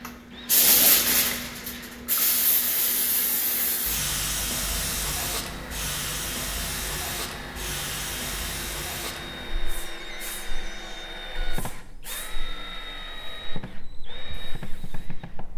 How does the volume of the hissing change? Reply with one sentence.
The volume of the hissing goes down.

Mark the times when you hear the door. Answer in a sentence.
The door can be heard from 9.9 to 11.1 s.